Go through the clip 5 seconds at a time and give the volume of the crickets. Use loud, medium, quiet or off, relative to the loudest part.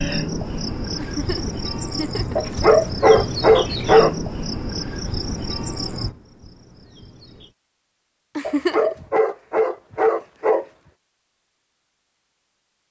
loud, medium, off.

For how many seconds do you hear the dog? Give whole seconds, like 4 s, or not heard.
4 s.